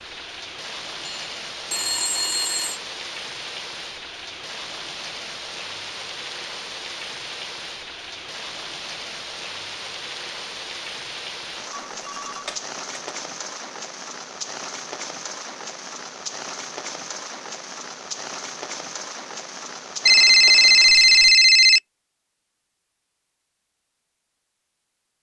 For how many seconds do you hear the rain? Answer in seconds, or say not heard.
21 s.